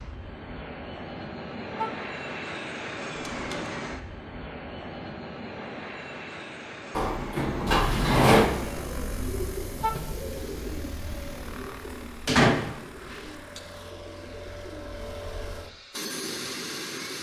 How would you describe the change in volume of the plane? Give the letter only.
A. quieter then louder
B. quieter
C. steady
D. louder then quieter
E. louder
A.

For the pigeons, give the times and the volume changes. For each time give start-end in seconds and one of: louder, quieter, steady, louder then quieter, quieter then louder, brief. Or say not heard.
8.4-15.7 quieter.